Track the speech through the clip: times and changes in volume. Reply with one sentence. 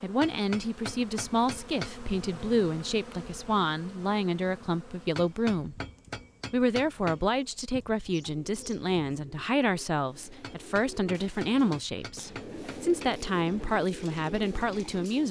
You can hear the speech from 0.0 to 5.8 s, at a steady volume; and from 6.5 to 15.2 s, at a steady volume.